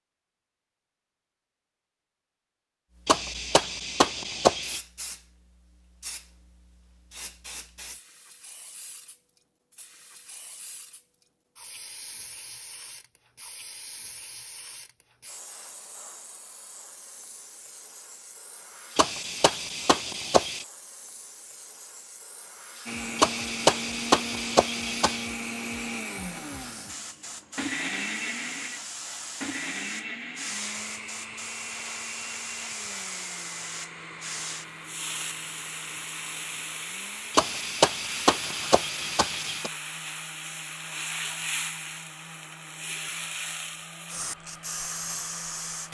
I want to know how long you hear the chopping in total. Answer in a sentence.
The chopping can be heard for 8 seconds in total.